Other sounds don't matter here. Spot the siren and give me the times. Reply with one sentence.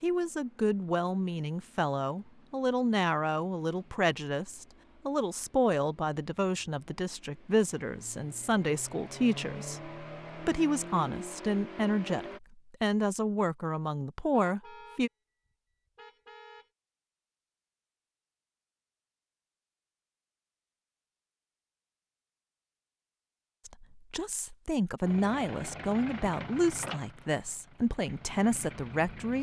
The siren can't be heard in this clip.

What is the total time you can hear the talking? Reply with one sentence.
You can hear the talking for 21 seconds altogether.